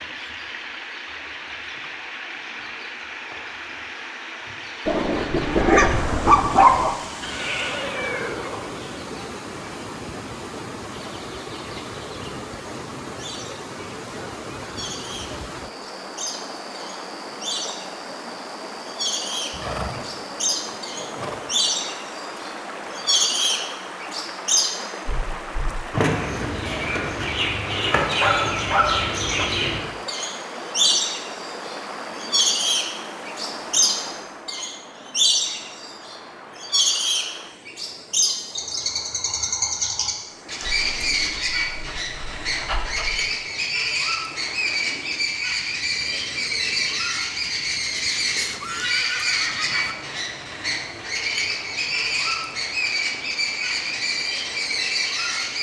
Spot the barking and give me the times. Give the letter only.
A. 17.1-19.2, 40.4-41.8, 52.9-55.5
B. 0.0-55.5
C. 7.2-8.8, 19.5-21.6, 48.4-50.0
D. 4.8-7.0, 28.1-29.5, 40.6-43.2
D.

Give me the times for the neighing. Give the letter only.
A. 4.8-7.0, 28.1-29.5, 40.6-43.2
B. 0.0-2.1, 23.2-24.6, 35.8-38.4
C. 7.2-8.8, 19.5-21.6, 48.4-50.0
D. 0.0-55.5
C.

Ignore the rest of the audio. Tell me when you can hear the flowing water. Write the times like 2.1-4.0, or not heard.
0.0-55.5.